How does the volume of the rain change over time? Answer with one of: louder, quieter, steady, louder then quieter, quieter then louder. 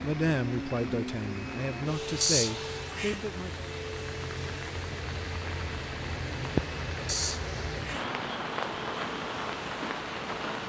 louder.